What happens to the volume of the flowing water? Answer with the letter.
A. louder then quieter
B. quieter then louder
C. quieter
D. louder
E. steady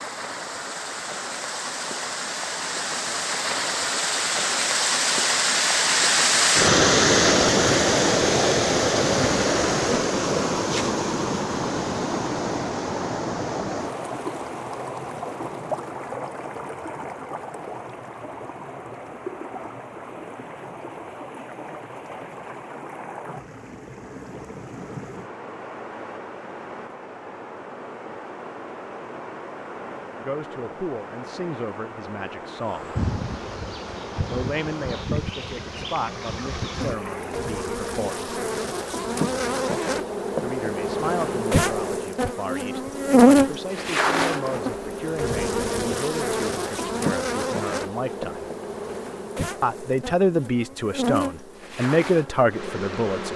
C.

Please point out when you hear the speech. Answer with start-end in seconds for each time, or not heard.
30.2-33.0, 34.2-38.3, 40.4-48.5, 49.6-53.3.